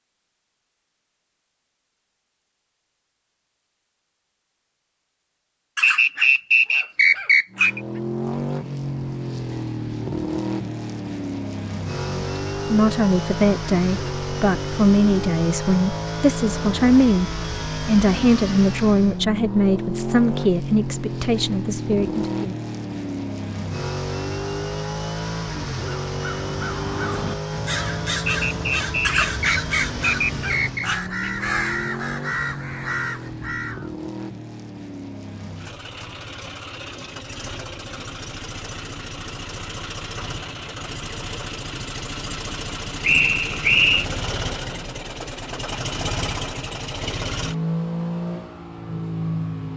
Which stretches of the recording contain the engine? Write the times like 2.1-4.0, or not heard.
7.5-49.7.